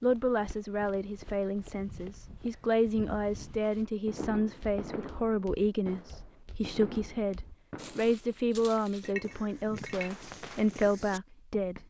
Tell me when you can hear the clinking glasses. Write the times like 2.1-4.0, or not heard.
9.1-10.1.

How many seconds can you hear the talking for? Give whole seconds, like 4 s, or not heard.
12 s.